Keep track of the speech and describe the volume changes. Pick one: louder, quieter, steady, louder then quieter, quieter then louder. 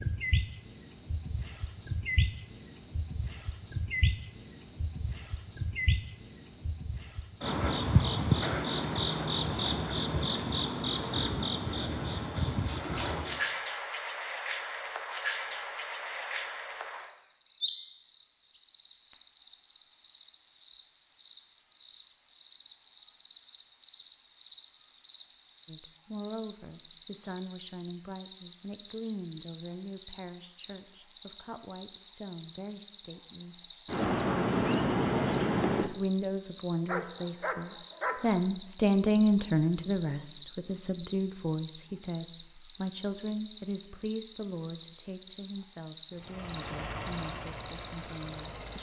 louder then quieter.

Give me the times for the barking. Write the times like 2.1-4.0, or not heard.
36.9-38.4.